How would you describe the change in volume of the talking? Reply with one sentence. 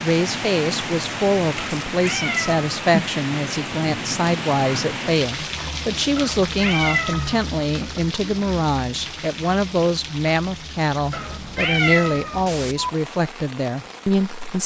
The loudness of the talking stays about the same.